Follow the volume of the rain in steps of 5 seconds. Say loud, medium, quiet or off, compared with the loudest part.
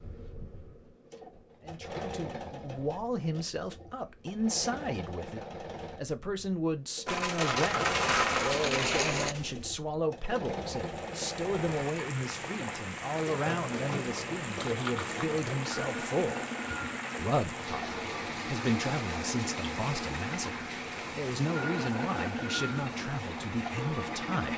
off, off, loud, loud, loud.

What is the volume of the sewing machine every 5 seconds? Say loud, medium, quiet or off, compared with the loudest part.
medium, medium, loud, loud, loud.